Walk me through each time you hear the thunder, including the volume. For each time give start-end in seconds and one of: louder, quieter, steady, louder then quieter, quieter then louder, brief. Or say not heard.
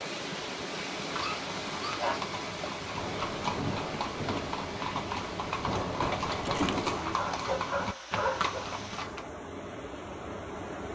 3.0-7.0 quieter then louder.